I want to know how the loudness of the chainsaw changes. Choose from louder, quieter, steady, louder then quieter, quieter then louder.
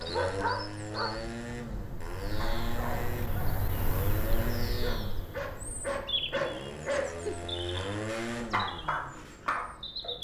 steady.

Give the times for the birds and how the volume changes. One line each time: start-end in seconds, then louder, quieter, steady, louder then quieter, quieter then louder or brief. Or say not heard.
0.0-10.1 louder then quieter.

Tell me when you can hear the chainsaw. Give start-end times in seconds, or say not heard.
0.0-10.1.